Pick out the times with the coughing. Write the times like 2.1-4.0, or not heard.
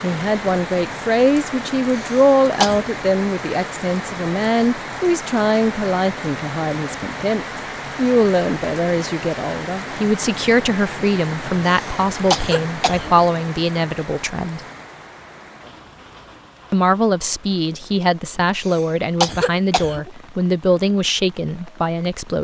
1.9-2.9, 11.7-13.2, 18.6-20.1.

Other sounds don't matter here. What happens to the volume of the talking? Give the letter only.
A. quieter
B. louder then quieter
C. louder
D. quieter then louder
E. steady
E.